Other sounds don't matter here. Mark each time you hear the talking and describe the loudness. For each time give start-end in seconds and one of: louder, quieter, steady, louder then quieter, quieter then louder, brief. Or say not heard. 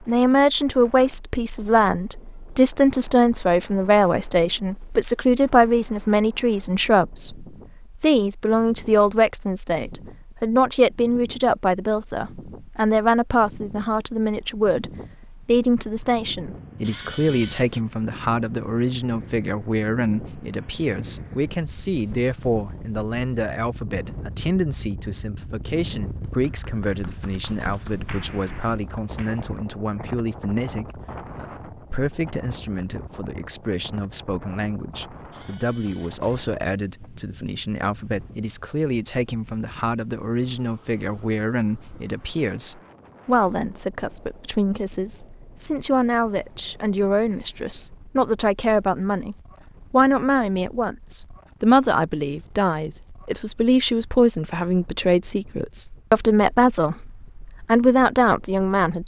0.1-59.0 quieter then louder.